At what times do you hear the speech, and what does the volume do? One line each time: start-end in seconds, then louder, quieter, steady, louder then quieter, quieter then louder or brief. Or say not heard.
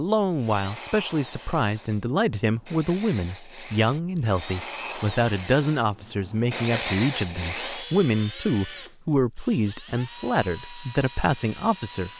0.0-12.1 steady.